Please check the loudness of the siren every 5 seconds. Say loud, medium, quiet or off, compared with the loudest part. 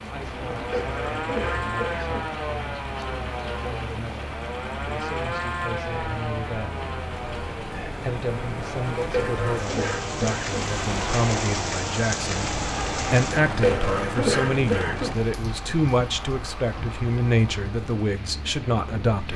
loud, loud, off, off.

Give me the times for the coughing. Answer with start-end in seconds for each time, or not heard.
0.7-2.4, 9.1-10.8, 13.6-15.1.